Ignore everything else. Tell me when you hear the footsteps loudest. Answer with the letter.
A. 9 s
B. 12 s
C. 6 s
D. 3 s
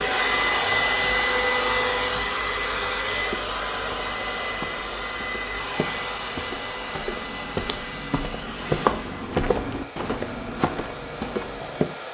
A.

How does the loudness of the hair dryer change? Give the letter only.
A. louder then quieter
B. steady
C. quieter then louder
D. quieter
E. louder
D.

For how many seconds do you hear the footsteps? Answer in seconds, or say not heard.
9 s.